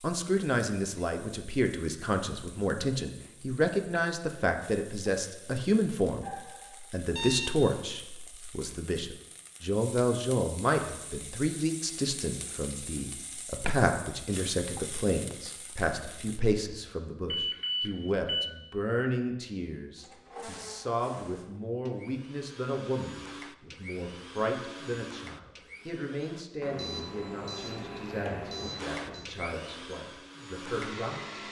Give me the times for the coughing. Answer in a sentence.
The coughing can't be heard in this clip.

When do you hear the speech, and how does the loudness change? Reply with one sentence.
You can hear the speech from 0.0 to 31.4 s, getting quieter.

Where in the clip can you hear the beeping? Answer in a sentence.
You can hear the beeping from 6.2 to 7.5 s, from 17.3 to 18.5 s and from 26.6 to 29.2 s.